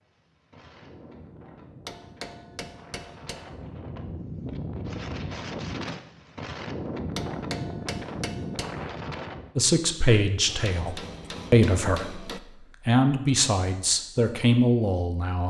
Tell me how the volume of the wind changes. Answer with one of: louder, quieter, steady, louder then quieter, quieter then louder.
louder.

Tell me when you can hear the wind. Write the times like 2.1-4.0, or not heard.
0.0-9.6.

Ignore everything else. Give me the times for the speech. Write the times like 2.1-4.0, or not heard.
9.6-15.4.